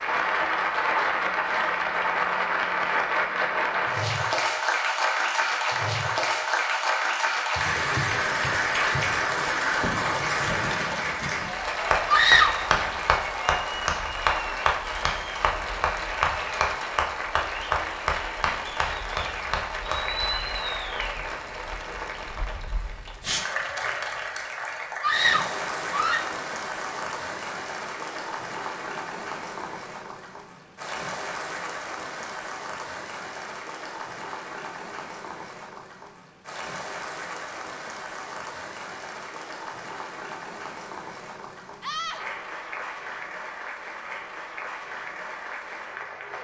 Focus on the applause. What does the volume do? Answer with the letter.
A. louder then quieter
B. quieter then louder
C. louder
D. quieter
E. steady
D.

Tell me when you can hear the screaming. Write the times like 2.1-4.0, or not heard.
12.1-12.7, 25.0-26.4, 41.8-42.2.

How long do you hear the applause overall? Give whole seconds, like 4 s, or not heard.
46 s.